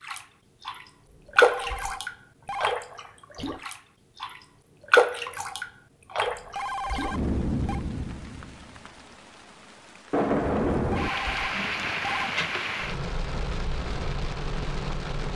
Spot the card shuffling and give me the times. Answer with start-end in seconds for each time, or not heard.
not heard.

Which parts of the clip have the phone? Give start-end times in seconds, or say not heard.
1.1-2.8, 6.2-7.8, 10.9-12.3.